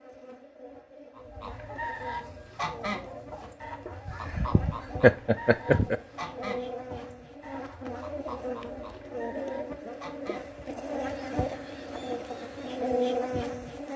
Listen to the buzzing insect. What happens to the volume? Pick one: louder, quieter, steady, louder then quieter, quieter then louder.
louder.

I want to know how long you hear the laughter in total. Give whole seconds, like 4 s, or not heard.
2 s.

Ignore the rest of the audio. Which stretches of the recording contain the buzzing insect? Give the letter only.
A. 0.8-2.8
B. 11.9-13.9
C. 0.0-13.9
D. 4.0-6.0
C.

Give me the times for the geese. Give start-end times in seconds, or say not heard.
1.1-12.8.